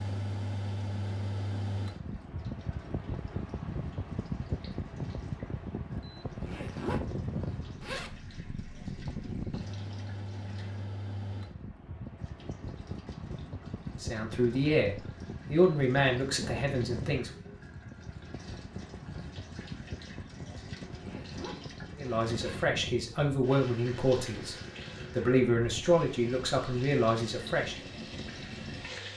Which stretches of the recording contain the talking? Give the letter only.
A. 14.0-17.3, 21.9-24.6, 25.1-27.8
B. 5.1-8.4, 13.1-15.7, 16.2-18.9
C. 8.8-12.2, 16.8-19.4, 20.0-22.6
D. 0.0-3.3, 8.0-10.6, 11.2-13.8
A.